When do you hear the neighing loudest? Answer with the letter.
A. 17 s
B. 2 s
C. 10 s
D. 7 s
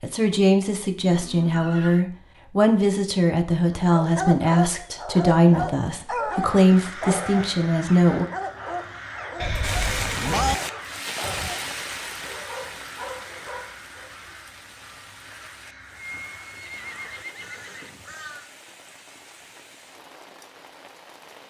C.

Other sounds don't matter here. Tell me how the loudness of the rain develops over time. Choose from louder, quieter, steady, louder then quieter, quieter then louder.
quieter.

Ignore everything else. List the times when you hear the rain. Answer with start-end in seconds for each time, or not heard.
9.6-21.4.